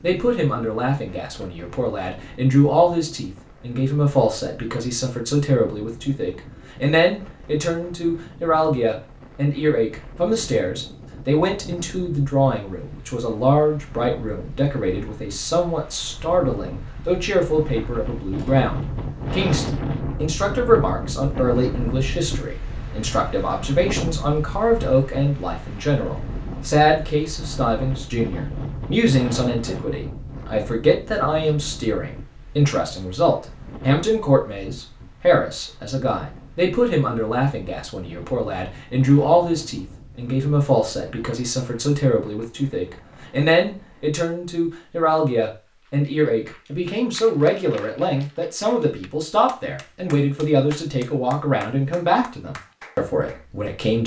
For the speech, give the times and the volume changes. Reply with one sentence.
You can hear the speech from 0.0 to 54.0 s, at a steady volume.